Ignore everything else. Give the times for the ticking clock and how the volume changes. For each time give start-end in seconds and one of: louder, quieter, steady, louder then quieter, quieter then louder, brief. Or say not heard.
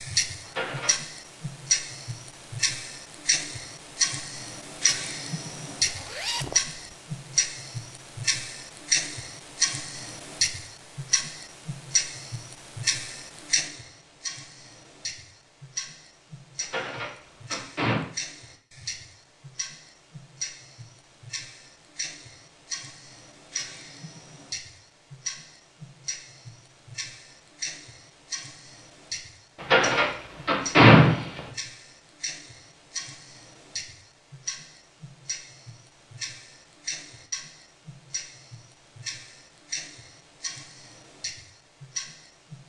0.0-42.6 quieter.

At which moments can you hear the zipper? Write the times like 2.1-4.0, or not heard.
5.8-6.8.